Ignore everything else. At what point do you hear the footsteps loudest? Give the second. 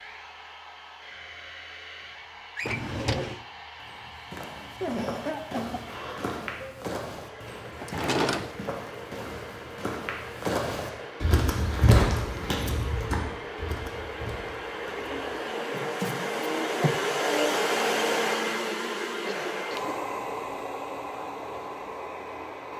12 s.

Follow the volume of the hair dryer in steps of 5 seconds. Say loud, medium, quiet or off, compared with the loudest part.
quiet, quiet, medium, loud, medium.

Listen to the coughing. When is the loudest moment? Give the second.
5 s.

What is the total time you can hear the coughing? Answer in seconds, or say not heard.
2 s.